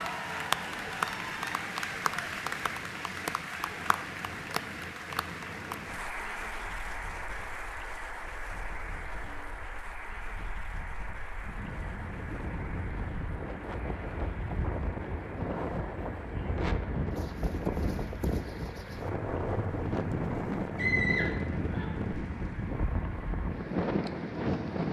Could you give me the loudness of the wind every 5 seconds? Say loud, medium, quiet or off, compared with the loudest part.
quiet, quiet, medium, loud, loud.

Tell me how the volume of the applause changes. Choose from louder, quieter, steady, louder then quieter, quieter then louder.
quieter.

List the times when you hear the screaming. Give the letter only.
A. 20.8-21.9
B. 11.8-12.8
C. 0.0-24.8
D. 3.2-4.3
A.